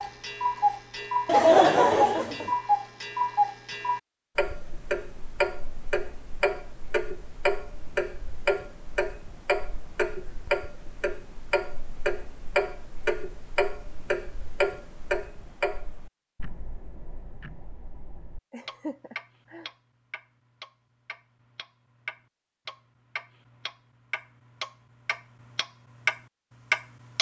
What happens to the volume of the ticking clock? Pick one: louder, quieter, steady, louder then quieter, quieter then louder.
quieter then louder.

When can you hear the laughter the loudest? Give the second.
2 s.